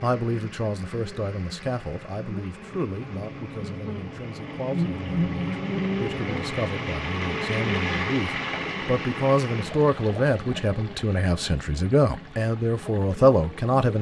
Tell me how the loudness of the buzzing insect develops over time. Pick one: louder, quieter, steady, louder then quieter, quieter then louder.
louder then quieter.